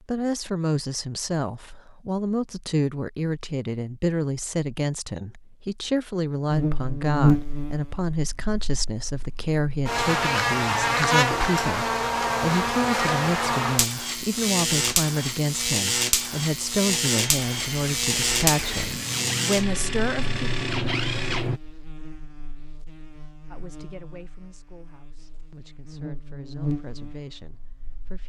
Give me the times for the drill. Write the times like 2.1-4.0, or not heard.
17.1-21.6.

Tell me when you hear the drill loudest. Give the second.
21 s.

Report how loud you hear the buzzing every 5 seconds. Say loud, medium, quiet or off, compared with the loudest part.
off, loud, loud, loud, quiet, quiet.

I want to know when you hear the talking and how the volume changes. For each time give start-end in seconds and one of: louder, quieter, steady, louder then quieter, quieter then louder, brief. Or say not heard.
0.1-20.5 steady
23.5-28.2 quieter then louder.